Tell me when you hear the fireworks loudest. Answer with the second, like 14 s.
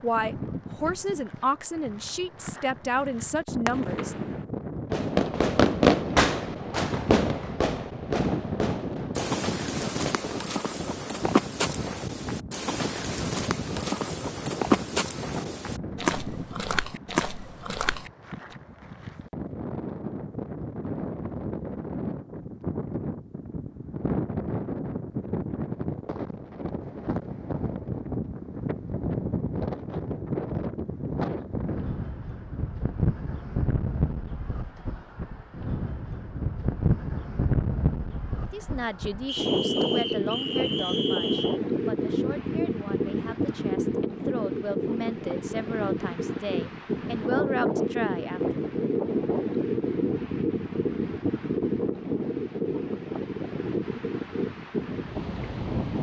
6 s.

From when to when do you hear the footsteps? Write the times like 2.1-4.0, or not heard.
9.2-18.6.